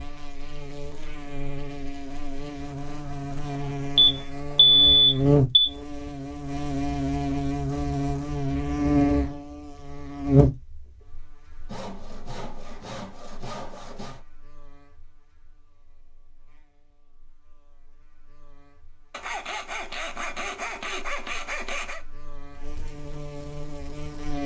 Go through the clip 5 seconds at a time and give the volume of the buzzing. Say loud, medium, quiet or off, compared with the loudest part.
medium, loud, loud, quiet, quiet.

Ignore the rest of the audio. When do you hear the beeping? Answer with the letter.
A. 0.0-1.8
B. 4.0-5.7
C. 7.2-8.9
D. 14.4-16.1
B.